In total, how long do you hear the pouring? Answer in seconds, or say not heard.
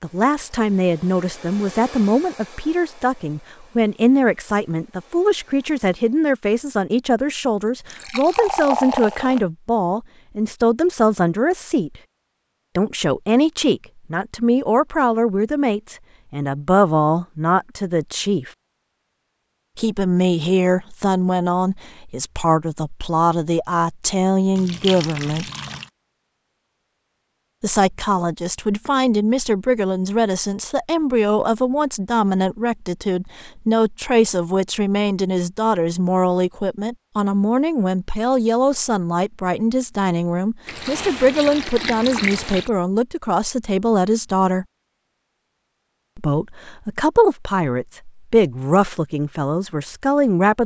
5 s.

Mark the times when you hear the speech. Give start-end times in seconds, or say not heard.
0.0-12.0, 12.8-18.5, 19.8-25.4, 27.6-44.6, 46.1-50.6.